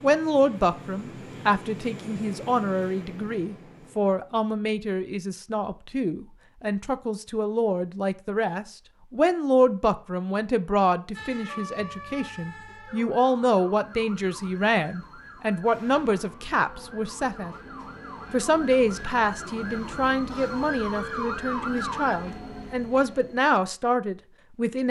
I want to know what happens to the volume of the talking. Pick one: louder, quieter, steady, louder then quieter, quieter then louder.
steady.